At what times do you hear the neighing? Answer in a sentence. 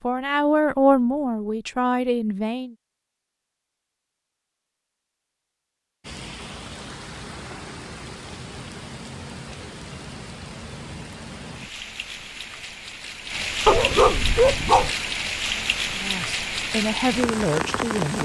The neighing can't be heard in this clip.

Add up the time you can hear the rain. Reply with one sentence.
You can hear the rain for 12 seconds altogether.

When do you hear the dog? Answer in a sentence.
You can hear the dog from 13.7 to 14.9 s.